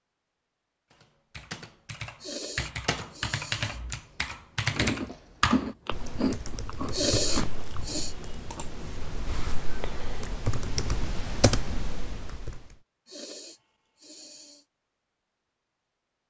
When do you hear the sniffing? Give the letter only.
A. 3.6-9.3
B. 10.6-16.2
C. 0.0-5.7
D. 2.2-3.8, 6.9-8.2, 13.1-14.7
D.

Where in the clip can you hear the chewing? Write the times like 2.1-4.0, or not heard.
3.6-9.3.